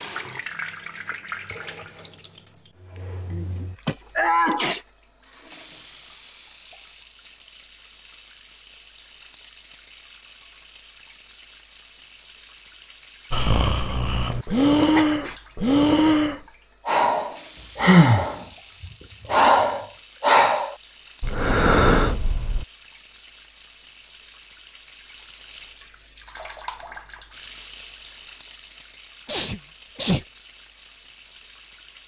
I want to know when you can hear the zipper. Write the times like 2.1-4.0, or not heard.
not heard.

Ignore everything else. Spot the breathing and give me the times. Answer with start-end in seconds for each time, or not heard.
13.3-22.6.